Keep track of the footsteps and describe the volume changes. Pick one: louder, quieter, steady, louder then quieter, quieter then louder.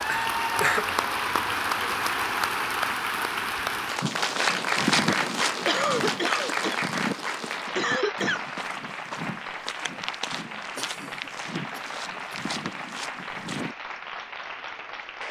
quieter.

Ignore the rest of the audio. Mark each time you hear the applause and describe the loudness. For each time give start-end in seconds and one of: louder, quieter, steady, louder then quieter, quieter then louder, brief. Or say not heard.
0.0-15.2 quieter.